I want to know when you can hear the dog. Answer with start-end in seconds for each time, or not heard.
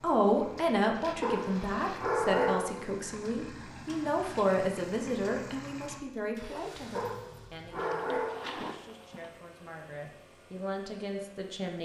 1.2-2.9, 7.0-8.6.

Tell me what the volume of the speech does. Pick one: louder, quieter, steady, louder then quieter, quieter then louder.
quieter then louder.